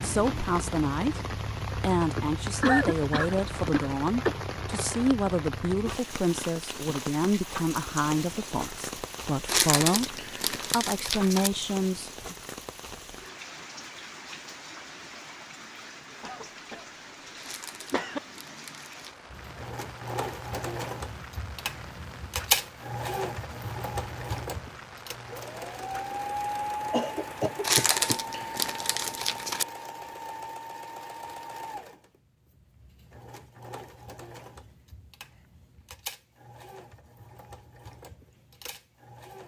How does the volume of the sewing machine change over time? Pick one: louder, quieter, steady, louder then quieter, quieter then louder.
quieter.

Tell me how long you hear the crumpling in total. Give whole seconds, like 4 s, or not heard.
6 s.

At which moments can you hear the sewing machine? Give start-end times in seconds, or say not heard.
19.3-39.4.